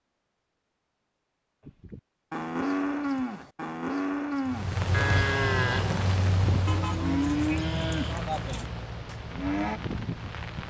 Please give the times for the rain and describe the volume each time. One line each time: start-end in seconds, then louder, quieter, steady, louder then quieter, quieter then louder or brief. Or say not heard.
4.5-10.6 quieter.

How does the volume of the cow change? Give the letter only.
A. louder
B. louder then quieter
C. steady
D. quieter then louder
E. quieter
E.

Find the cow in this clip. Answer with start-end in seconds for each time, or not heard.
1.6-9.8.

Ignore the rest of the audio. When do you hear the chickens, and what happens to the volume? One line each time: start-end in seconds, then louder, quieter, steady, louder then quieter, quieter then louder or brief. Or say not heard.
not heard.